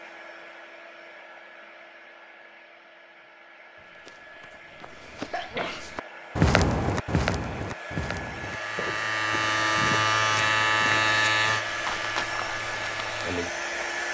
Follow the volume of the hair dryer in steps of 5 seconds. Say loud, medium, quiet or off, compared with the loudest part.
quiet, medium, loud.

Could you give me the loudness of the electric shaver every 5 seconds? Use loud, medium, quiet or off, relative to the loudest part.
off, loud, loud.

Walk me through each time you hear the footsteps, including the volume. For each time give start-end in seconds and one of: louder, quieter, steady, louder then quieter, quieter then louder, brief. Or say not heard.
4.0-13.1 louder then quieter.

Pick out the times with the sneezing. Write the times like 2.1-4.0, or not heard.
5.3-5.9.